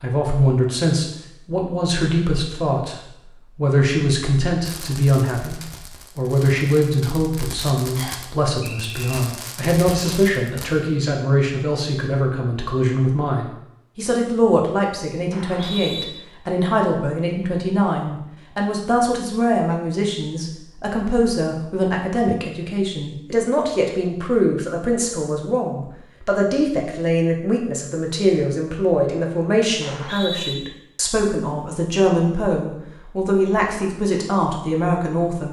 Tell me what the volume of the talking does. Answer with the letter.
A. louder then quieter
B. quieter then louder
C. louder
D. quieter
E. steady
E.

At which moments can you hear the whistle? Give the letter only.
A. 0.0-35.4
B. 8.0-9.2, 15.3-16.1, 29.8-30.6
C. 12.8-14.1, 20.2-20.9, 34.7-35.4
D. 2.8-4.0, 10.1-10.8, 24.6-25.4
B.